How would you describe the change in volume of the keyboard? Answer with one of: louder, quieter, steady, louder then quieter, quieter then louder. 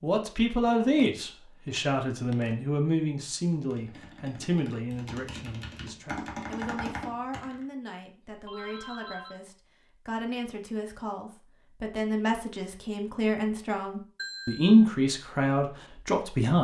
louder.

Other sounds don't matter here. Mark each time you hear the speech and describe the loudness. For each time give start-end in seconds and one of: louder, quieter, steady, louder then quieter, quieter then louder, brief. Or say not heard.
0.0-16.6 quieter then louder.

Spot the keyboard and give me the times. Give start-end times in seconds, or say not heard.
3.5-7.7.